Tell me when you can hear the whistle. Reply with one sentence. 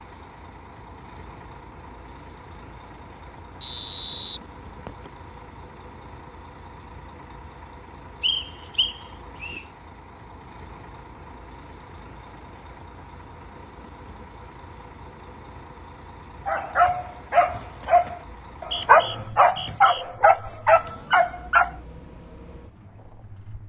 The whistle can be heard from 3.6 to 5.1 s, from 8.2 to 9.6 s and from 18.3 to 20.1 s.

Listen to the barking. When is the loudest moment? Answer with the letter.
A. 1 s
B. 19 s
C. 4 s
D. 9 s
B.